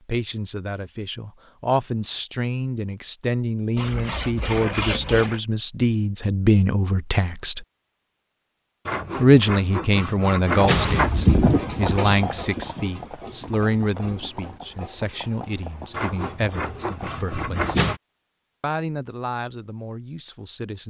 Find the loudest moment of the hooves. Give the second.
11 s.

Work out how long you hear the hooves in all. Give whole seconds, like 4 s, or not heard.
7 s.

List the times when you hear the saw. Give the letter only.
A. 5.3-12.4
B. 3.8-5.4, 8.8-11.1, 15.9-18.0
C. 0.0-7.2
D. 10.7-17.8
B.